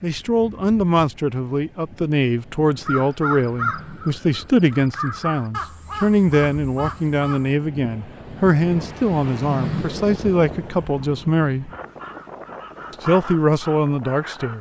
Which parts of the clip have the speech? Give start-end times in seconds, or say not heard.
0.0-11.7, 12.9-14.5.